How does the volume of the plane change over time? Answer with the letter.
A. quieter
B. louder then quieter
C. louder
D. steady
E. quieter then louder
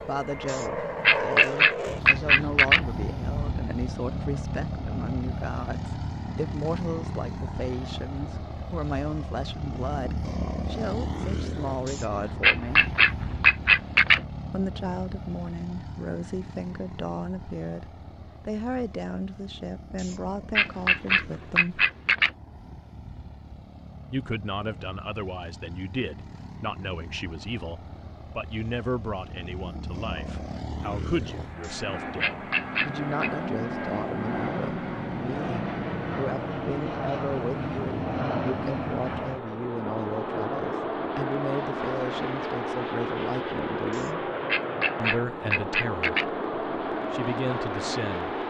E.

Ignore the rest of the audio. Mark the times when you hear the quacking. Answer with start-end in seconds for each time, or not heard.
0.5-2.9, 11.8-14.2, 19.9-22.3, 31.6-33.3, 43.9-46.3.